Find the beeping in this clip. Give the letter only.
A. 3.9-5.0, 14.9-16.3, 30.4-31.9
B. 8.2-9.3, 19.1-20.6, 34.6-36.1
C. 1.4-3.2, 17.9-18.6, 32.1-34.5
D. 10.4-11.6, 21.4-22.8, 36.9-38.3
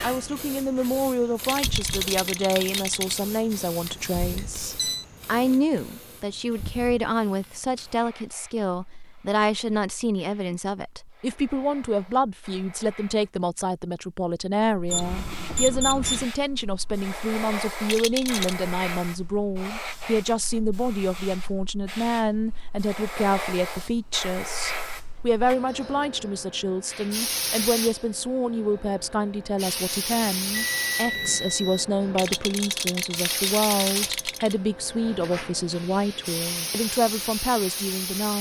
A.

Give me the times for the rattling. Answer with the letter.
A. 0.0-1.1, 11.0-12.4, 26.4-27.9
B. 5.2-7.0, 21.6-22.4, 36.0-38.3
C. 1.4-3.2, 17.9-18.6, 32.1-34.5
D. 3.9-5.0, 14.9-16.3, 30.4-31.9
C.